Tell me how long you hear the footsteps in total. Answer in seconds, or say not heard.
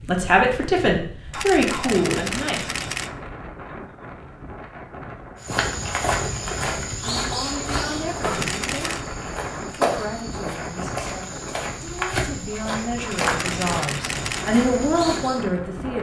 10 s.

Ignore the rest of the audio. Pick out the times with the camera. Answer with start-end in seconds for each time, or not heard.
1.3-3.1, 8.3-9.1, 13.1-14.5.